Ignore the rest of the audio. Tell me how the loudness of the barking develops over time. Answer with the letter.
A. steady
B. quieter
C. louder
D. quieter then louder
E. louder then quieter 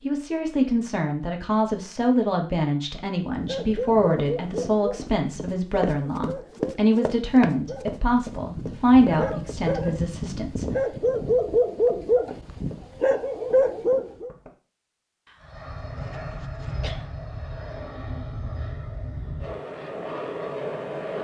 D.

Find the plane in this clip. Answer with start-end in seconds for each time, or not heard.
15.4-21.1.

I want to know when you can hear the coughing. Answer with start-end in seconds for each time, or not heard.
15.2-17.1.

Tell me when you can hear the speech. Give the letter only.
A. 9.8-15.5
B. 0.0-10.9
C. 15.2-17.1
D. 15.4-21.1
B.